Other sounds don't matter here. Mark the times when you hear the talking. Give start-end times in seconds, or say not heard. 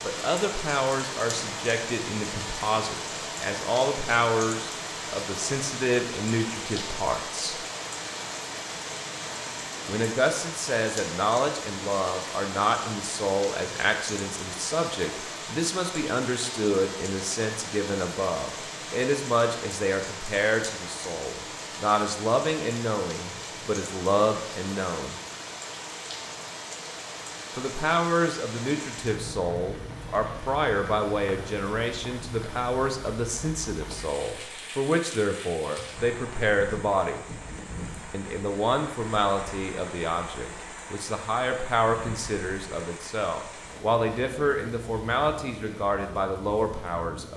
0.0-7.5, 9.8-25.1, 27.6-37.2, 38.1-47.3.